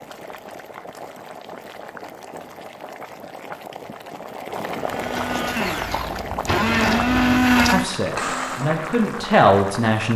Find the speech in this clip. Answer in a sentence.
You can hear the speech from 7.7 to 10.1 s.